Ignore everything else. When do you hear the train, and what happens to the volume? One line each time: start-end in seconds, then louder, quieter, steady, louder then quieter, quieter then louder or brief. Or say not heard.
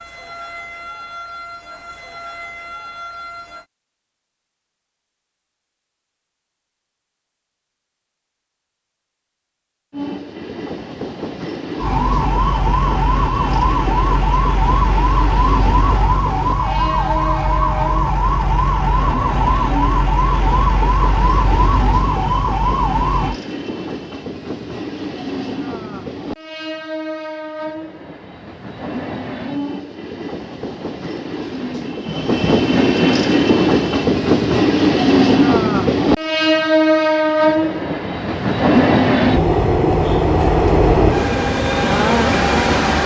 9.9-43.0 louder.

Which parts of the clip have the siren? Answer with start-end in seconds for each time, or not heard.
0.0-3.6, 11.8-23.4.